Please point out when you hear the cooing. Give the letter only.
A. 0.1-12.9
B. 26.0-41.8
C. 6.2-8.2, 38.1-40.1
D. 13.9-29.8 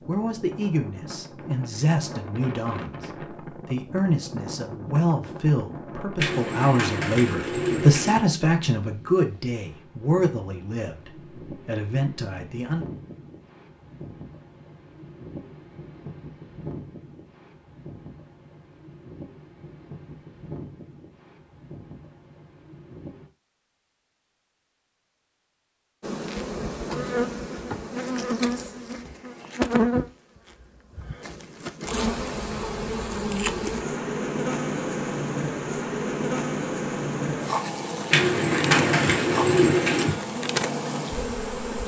C.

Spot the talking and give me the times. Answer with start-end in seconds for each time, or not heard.
0.1-12.9.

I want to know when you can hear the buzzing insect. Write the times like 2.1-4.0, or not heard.
26.0-41.8.